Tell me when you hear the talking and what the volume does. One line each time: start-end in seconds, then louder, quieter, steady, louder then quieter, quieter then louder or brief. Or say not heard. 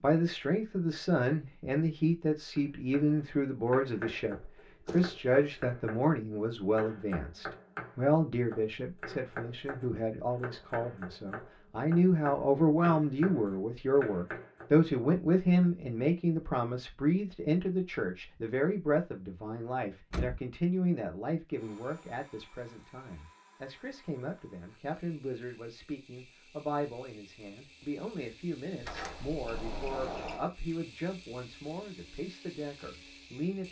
0.0-33.6 quieter.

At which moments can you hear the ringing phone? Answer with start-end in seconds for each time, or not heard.
not heard.